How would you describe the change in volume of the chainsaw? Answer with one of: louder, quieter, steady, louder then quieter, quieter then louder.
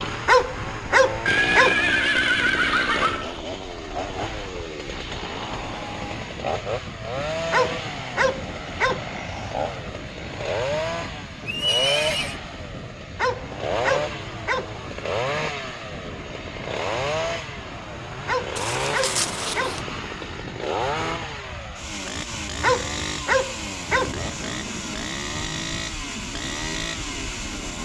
steady.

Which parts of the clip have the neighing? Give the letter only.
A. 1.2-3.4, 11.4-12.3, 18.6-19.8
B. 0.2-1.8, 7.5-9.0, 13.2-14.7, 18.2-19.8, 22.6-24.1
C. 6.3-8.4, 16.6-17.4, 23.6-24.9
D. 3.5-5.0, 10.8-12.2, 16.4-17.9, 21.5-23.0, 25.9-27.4
A.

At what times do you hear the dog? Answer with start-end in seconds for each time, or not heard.
0.2-1.8, 7.5-9.0, 13.2-14.7, 18.2-19.8, 22.6-24.1.